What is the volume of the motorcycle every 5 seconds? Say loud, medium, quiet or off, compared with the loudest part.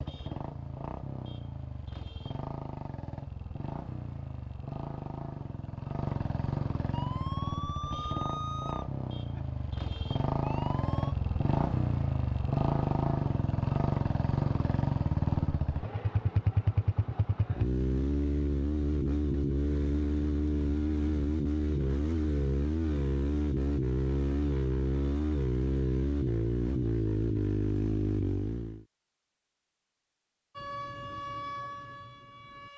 medium, medium, loud, loud, loud, loud, off.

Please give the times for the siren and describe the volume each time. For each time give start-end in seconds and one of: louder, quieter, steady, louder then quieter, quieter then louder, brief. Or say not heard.
6.9-11.2 quieter then louder
30.6-32.7 brief.